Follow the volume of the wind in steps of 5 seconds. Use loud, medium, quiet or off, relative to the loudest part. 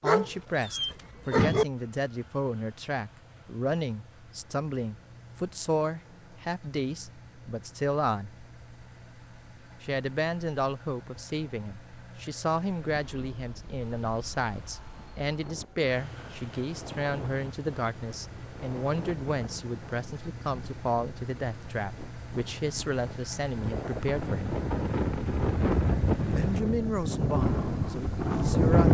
off, off, quiet, quiet, medium, loud.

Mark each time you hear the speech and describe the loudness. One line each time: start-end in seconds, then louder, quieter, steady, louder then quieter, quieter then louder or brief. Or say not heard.
0.0-8.3 steady
9.8-24.6 steady
26.3-28.9 brief.